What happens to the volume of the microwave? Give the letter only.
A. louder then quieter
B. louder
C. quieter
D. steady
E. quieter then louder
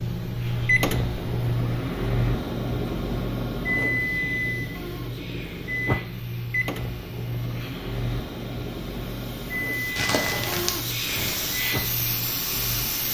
C.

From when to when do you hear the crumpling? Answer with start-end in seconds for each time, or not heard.
9.9-11.4.